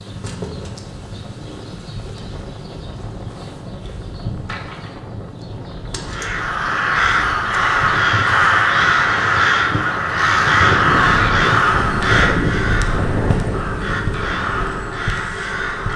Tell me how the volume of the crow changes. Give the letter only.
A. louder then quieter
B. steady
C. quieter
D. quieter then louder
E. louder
C.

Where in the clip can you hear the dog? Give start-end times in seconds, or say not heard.
not heard.